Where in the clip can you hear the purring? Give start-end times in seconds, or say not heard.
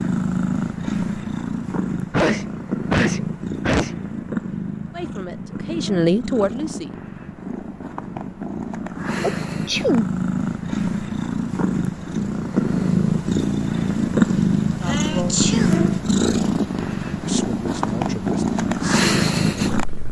0.0-20.0.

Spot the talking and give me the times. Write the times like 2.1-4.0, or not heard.
4.9-7.0, 14.8-15.4, 17.2-20.0.